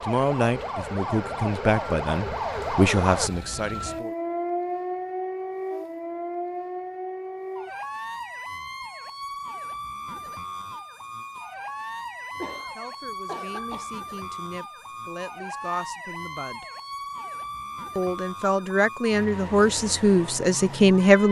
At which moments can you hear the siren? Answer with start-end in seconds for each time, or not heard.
0.0-21.2.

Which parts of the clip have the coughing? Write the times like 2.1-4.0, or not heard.
12.3-13.9.